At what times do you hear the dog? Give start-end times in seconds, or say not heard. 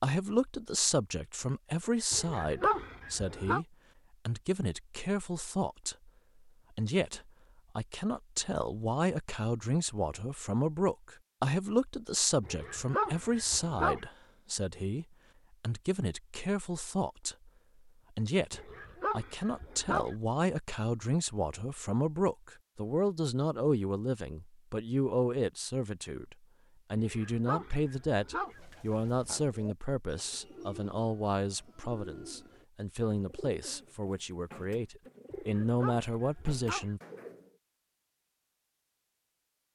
2.1-3.6, 12.4-14.1, 18.5-20.1, 26.9-28.6, 35.3-37.0.